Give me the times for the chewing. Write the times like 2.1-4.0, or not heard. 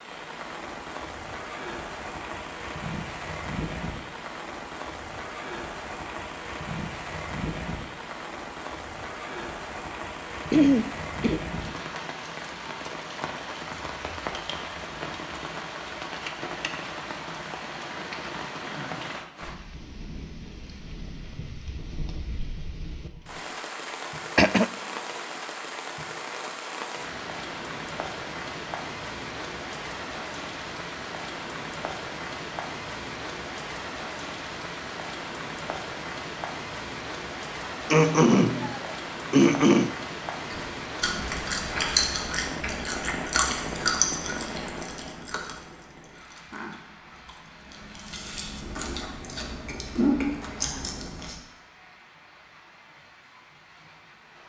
40.5-51.4.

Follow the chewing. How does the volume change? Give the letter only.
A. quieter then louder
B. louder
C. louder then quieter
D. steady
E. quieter
A.